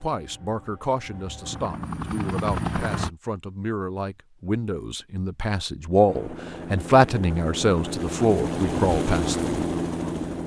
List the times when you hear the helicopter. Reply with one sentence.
The helicopter can be heard from 0.0 to 3.1 s and from 6.0 to 10.4 s.